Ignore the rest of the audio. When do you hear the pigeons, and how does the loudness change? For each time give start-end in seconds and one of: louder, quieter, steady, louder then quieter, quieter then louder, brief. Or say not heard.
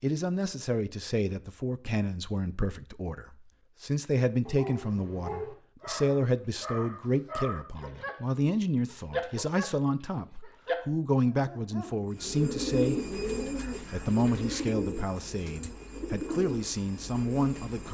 12.1-17.8 quieter.